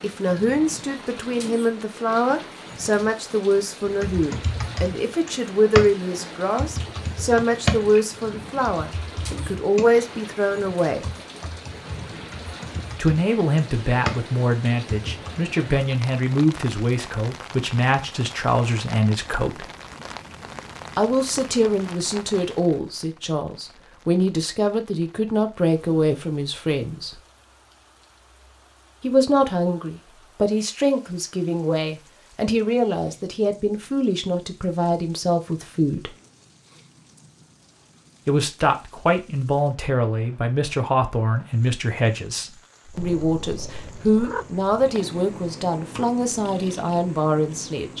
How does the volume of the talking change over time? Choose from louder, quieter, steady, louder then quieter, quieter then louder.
steady.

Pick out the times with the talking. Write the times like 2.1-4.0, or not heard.
0.0-11.1, 12.9-19.6, 20.9-27.2, 29.0-36.1, 38.2-47.9.